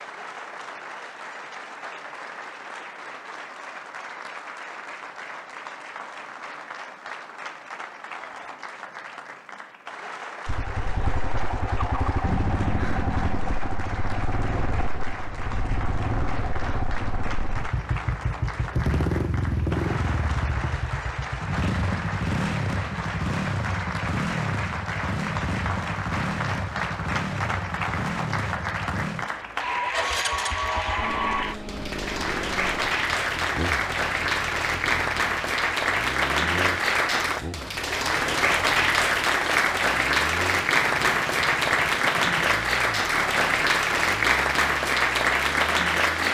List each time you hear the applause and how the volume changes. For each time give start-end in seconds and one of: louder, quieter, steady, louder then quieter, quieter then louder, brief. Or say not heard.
0.0-46.3 louder.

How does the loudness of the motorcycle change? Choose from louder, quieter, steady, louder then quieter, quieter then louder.
quieter.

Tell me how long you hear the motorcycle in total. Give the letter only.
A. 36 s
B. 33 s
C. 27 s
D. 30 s
A.